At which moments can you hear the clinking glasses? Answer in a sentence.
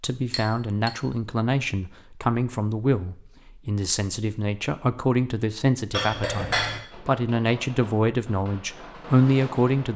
You can hear the clinking glasses from 0.3 to 0.9 s and from 5.9 to 6.8 s.